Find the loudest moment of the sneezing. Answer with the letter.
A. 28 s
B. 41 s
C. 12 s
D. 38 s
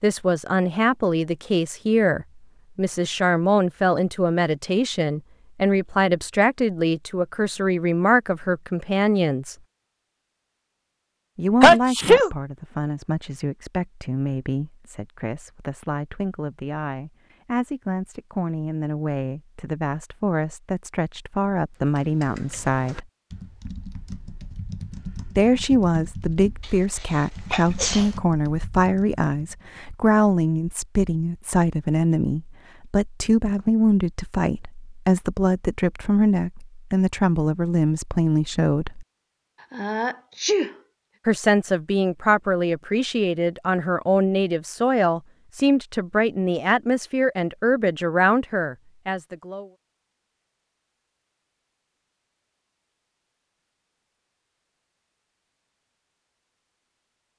C.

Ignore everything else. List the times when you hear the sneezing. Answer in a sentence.
The sneezing can be heard from 11.6 to 12.3 s, from 27.1 to 28.1 s and from 39.7 to 40.8 s.